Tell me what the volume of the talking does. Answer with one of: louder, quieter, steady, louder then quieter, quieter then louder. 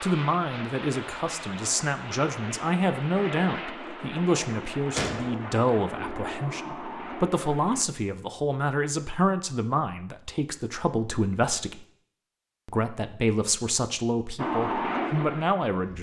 steady.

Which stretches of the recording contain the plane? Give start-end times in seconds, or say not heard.
0.0-7.8, 14.3-15.9.